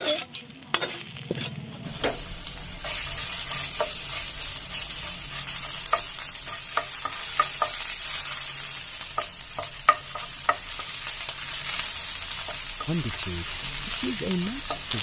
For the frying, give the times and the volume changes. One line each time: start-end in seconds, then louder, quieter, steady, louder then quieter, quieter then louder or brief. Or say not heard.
0.0-14.9 steady.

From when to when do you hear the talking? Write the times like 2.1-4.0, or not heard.
12.8-14.9.